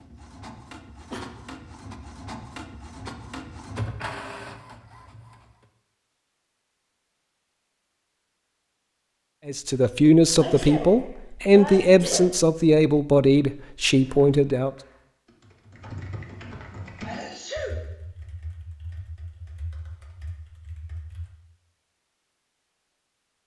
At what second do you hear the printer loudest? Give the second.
4 s.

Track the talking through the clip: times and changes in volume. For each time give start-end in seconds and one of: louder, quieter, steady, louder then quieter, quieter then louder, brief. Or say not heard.
9.4-14.7 steady.